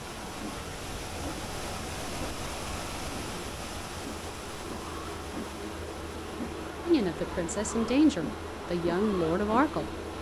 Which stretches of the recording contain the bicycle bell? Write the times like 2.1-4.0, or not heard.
not heard.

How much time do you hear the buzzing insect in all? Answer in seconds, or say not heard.
10 s.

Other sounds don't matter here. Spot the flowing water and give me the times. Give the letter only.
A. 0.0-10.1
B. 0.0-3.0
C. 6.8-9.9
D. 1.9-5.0
A.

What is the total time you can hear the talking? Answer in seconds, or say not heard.
3 s.